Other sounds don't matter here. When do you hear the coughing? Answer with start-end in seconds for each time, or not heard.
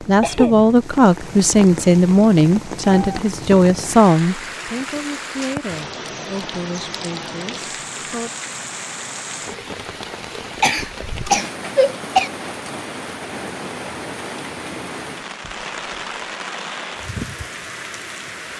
0.2-0.7, 10.6-12.3.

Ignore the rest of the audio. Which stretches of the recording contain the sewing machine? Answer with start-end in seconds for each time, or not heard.
not heard.